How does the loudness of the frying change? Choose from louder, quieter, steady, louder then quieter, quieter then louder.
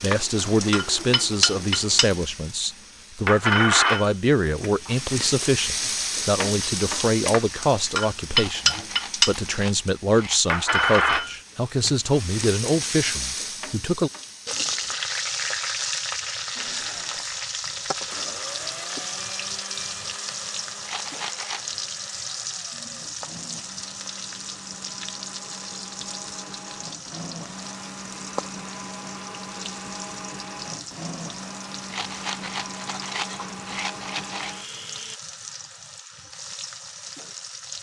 quieter.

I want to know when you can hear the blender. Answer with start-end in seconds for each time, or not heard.
0.1-2.1, 16.6-35.2.